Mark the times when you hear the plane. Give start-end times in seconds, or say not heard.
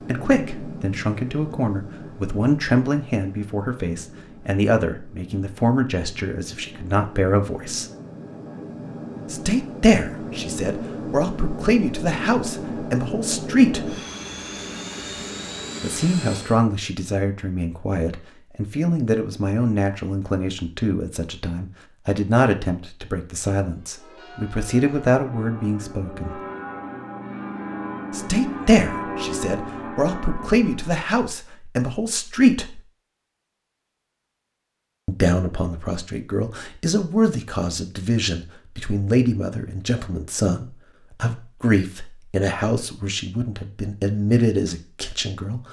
0.0-16.6.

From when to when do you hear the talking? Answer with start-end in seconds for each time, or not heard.
0.1-7.8, 9.3-14.0, 15.8-26.4, 28.1-32.8, 35.0-45.6.